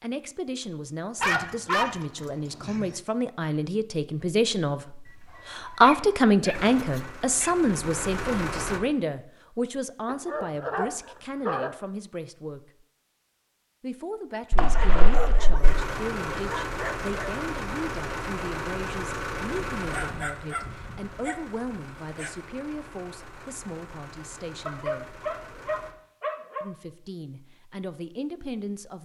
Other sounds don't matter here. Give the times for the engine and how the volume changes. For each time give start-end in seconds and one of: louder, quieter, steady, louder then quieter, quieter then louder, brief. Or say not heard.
6.5-8.8 brief
15.6-25.9 quieter.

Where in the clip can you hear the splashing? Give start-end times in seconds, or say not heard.
14.5-15.6.